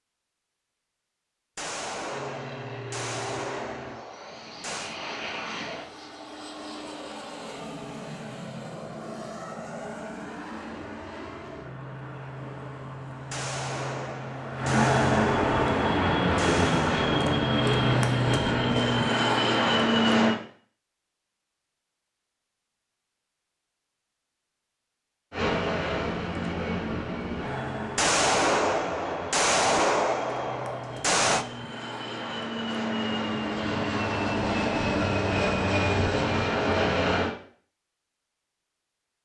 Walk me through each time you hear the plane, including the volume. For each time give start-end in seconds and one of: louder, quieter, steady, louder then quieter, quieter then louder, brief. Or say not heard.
2.0-20.4 louder
25.3-37.4 quieter then louder.